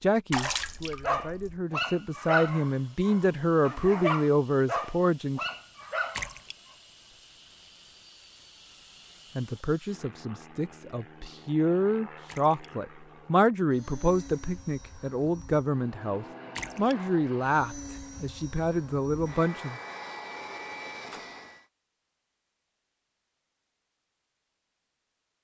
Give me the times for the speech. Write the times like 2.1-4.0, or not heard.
0.0-5.4, 9.3-19.8.